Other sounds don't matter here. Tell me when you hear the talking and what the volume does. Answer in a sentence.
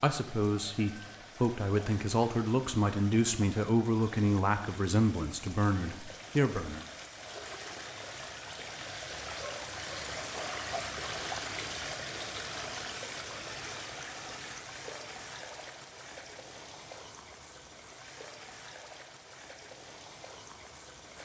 You can hear the talking from 0.0 to 6.8 s, at a steady volume.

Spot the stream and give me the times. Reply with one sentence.
You can hear the stream from 0.1 to 21.2 s.